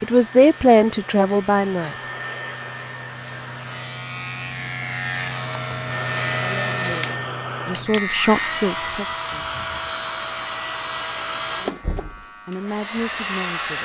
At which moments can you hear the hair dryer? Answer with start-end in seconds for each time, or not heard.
0.0-4.0, 5.8-13.7.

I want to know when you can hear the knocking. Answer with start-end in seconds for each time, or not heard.
11.8-12.2.